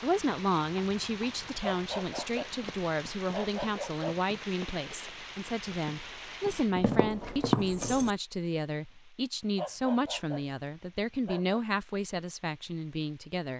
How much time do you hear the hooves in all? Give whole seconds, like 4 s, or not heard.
8 s.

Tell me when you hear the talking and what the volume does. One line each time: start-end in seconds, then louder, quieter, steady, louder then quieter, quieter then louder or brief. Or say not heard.
0.0-13.5 steady.